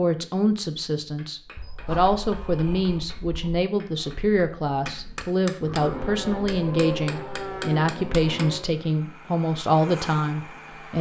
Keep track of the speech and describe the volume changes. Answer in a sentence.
The loudness of the speech stays about the same.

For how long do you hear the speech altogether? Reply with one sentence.
The speech can be heard for 11 seconds in total.